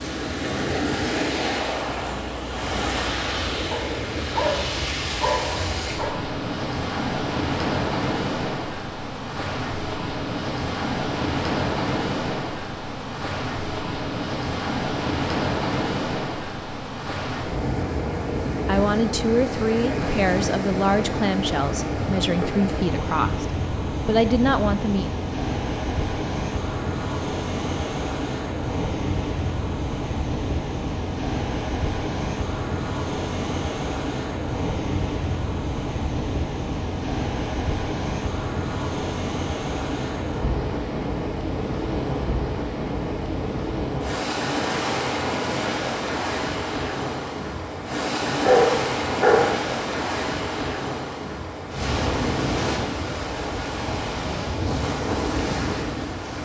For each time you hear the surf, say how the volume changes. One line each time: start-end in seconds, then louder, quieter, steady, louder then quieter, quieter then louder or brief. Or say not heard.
0.0-56.3 steady.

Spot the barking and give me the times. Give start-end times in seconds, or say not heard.
3.7-6.2, 48.4-49.5.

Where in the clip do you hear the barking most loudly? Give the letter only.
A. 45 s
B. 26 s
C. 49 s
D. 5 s
C.